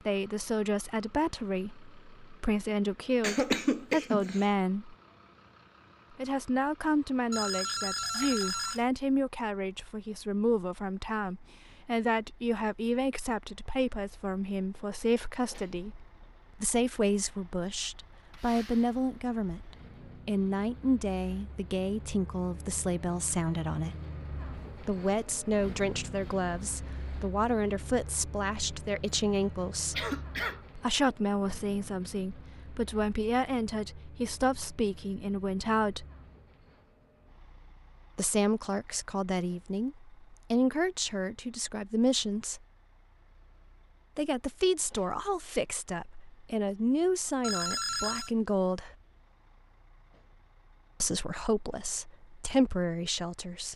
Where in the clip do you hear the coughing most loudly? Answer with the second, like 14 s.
4 s.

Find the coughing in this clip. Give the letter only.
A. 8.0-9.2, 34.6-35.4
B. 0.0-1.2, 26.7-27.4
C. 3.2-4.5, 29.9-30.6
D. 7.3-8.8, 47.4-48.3
C.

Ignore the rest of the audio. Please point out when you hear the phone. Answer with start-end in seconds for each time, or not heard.
7.3-8.8, 47.4-48.3.